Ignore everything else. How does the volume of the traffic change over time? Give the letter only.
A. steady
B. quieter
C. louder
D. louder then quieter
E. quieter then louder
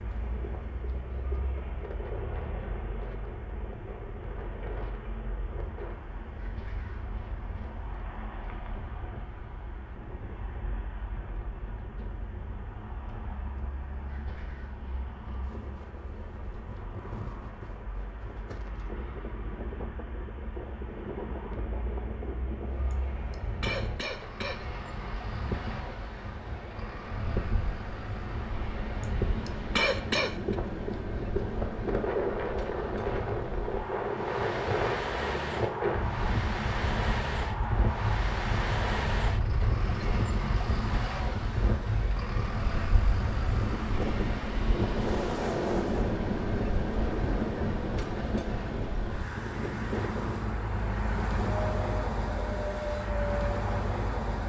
C.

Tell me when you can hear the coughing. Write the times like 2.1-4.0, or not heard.
22.9-24.6, 29.0-30.6.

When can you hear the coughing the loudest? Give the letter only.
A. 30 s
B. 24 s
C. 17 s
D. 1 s
A.